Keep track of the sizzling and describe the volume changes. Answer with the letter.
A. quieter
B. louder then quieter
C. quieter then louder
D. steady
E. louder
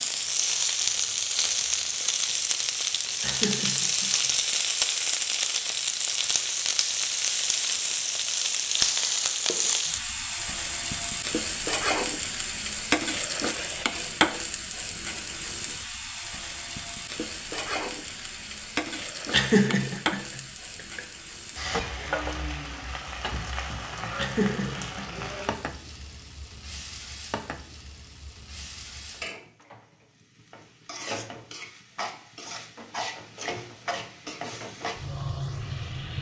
A.